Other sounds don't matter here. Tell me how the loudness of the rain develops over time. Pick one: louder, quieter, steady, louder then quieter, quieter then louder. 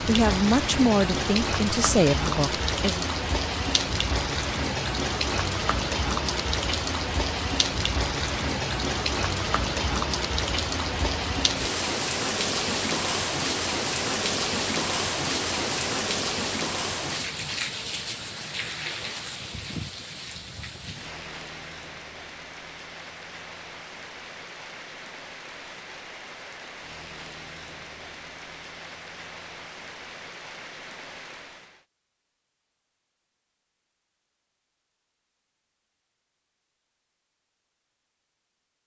quieter.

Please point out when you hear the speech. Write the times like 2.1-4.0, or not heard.
0.1-3.0.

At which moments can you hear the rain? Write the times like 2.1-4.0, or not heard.
0.0-31.9.